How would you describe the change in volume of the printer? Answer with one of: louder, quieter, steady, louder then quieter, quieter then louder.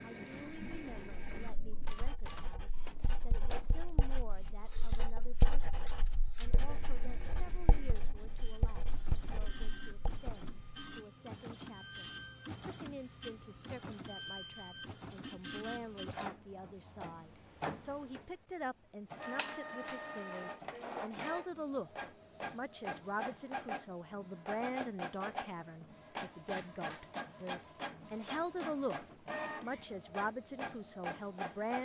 louder.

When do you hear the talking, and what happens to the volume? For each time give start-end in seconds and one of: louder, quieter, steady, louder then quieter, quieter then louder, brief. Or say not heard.
0.0-31.7 louder.